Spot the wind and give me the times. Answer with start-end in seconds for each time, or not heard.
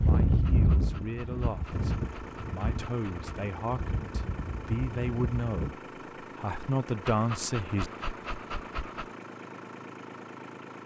0.0-5.7.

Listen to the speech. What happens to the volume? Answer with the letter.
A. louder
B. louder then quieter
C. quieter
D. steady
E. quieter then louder
A.